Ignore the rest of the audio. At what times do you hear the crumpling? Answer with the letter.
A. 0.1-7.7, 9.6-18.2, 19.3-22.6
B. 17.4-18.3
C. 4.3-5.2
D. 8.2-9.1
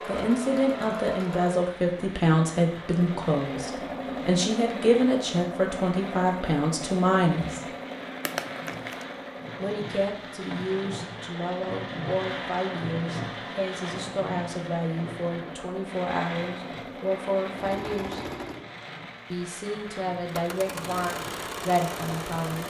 D.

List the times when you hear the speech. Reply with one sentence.
You can hear the speech from 0.1 to 7.7 s, from 9.6 to 18.2 s and from 19.3 to 22.6 s.